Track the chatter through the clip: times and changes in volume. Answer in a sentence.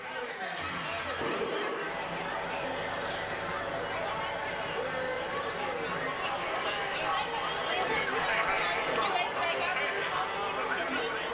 You can hear the chatter from 0.0 to 11.2 s, getting louder.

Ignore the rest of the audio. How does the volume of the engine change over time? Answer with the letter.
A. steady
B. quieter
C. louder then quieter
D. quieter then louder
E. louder
B.